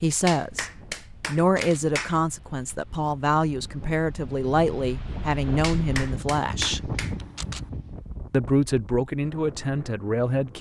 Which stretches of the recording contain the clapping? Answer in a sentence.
You can hear the clapping from 0.2 to 2.2 s and from 5.6 to 7.2 s.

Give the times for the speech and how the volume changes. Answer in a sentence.
The speech can be heard from 0.0 to 6.9 s, at a steady volume; and briefly from 8.3 to 10.5 s.